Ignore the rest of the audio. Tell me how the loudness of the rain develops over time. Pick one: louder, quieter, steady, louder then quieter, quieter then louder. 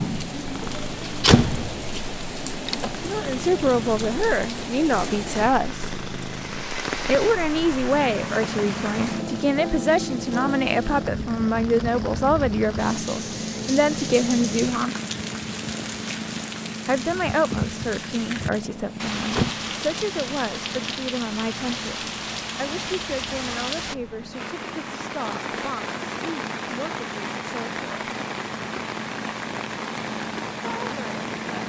steady.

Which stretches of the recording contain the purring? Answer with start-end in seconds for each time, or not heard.
0.0-31.6.